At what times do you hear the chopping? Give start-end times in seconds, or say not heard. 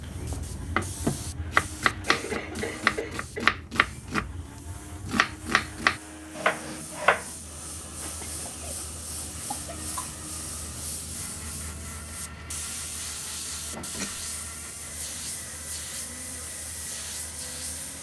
0.0-7.3.